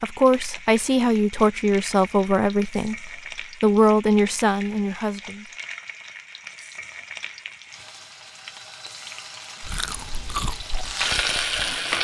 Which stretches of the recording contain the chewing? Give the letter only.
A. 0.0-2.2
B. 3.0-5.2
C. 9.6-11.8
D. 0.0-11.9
C.